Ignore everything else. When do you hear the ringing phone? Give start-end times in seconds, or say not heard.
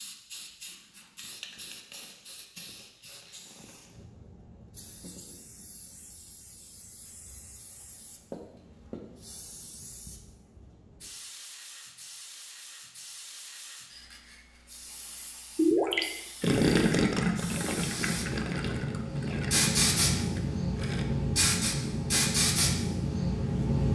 not heard.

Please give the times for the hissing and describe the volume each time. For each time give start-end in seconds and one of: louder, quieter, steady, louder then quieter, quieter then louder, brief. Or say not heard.
0.0-23.9 louder.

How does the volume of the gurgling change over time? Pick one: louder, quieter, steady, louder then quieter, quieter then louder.
quieter.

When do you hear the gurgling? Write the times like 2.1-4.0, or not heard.
15.6-21.1.